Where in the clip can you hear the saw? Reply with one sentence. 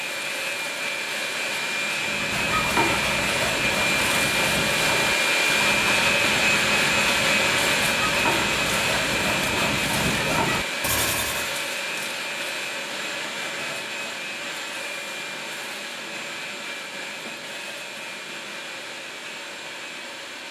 You can hear the saw from 1.9 to 11.6 s.